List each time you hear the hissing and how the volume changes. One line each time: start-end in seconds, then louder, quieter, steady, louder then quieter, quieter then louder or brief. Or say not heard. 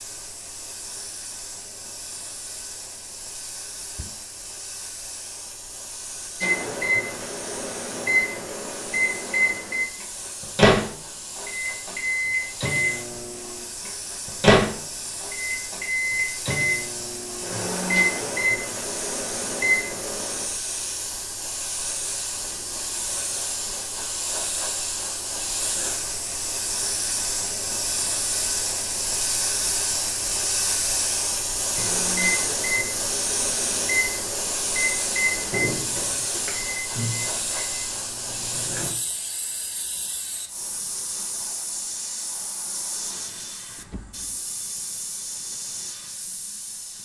0.0-47.0 louder then quieter.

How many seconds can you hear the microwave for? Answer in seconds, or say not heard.
21 s.